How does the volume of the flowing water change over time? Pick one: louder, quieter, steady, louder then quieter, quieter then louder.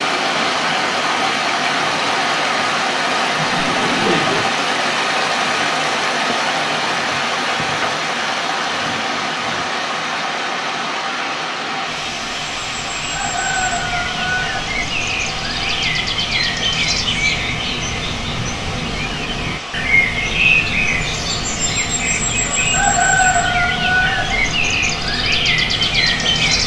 quieter.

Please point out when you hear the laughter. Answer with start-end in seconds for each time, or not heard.
3.4-4.5.